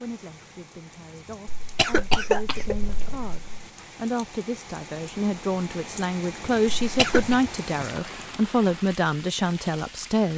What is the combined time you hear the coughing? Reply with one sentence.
You can hear the coughing for 3 seconds altogether.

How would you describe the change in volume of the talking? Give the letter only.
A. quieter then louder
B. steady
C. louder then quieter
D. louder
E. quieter
D.